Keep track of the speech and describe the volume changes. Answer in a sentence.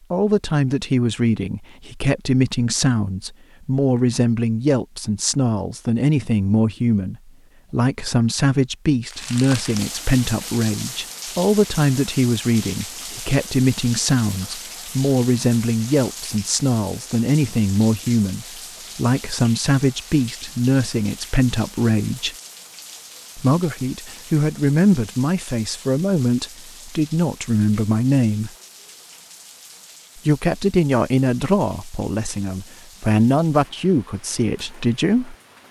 The volume of the speech stays about the same.